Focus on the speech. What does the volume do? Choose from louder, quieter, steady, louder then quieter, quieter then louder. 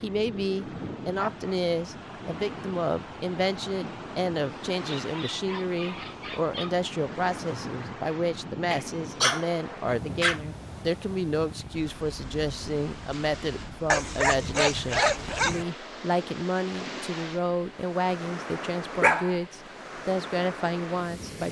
steady.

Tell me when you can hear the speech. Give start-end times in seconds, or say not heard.
0.0-21.4.